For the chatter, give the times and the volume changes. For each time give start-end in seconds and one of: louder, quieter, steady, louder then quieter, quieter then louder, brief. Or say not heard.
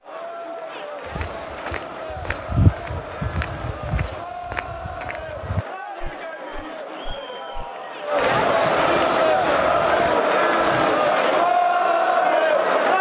0.0-12.9 louder.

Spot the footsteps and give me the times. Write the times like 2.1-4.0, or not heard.
1.1-11.2.